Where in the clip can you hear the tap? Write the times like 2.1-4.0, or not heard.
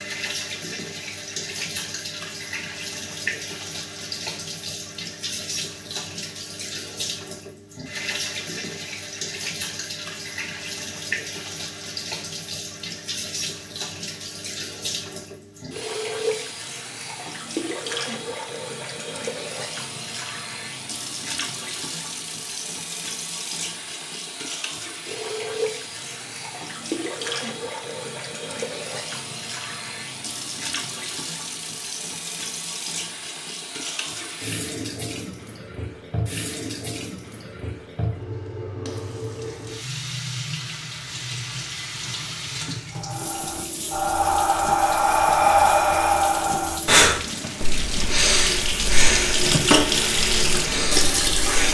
0.0-51.6.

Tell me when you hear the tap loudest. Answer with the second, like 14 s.
50 s.